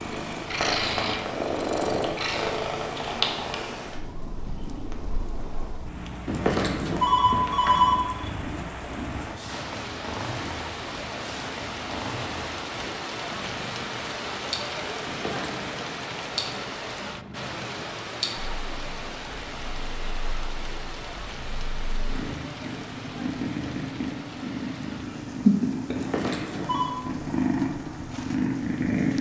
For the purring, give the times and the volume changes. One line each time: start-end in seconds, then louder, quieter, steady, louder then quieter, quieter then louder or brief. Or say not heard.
0.0-29.1 quieter then louder.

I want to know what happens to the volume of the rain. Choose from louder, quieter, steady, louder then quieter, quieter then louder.
louder then quieter.